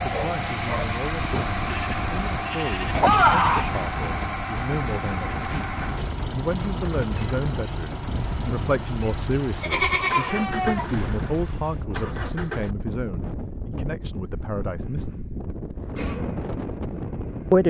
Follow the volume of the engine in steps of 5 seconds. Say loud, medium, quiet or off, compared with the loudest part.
loud, medium, medium, medium.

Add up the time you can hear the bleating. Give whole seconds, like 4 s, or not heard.
3 s.